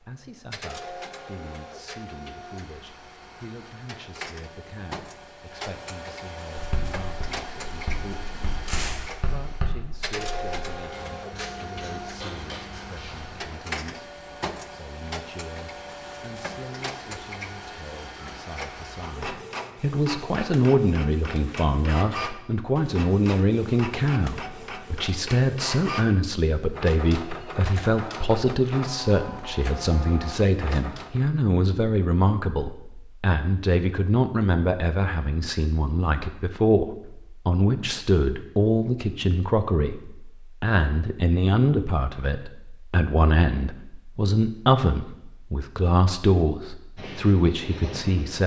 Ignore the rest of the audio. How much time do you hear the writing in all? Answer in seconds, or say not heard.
8 s.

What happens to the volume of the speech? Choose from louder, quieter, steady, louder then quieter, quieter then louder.
louder.